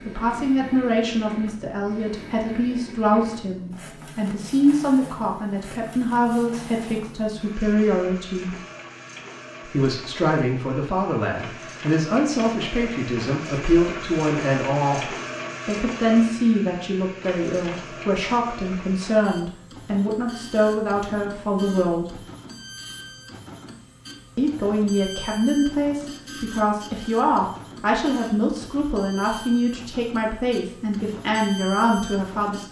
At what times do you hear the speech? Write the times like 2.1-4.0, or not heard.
0.1-8.6, 9.7-22.2, 24.4-32.6.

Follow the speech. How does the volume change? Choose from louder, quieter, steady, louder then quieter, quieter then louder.
steady.